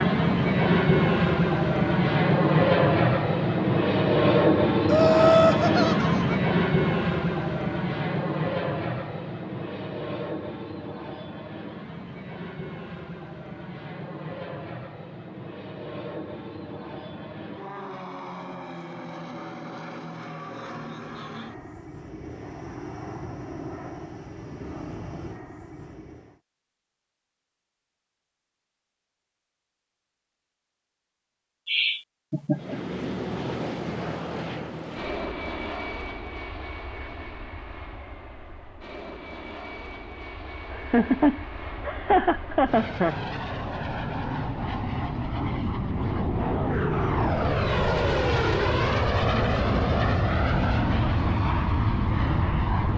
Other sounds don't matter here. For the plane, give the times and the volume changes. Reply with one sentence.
The plane can be heard from 0.0 to 26.4 s, getting quieter; and from 32.5 to 52.9 s, getting quieter then louder.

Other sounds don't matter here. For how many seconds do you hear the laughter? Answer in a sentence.
You can hear the laughter for 5 seconds altogether.